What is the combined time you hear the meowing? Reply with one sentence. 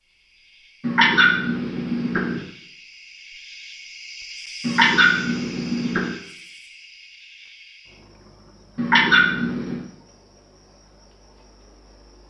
You can hear the meowing for 4 seconds altogether.